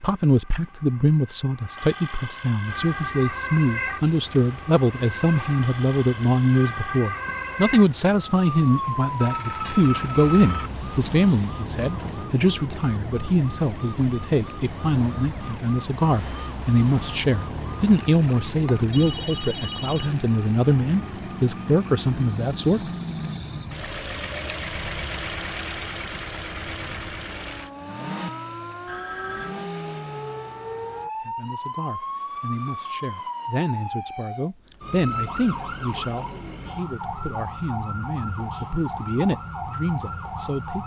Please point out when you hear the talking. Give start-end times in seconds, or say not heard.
0.0-22.8, 31.2-40.8.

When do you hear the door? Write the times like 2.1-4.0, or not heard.
not heard.